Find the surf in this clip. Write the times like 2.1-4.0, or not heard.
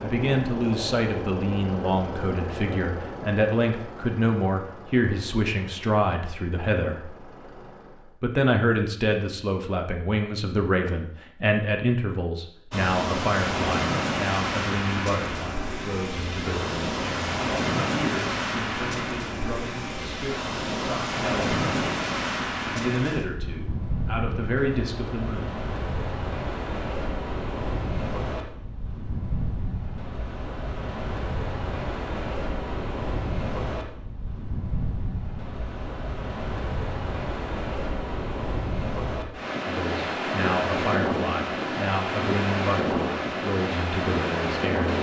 12.7-44.9.